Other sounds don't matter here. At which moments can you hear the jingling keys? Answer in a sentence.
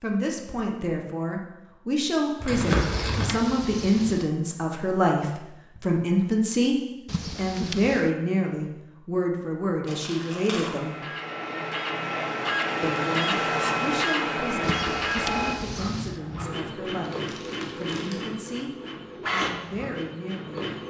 You can hear the jingling keys from 2.6 to 4.3 s, from 7.0 to 8.1 s and from 14.6 to 16.2 s.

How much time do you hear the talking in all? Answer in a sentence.
You can hear the talking for 19 seconds altogether.